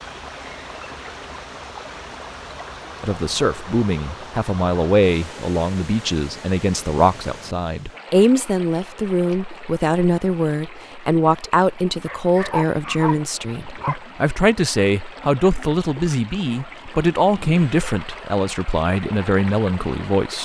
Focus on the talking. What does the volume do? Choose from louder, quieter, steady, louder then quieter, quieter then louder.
steady.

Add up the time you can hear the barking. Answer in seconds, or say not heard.
2 s.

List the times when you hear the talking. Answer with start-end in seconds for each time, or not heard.
3.0-20.4.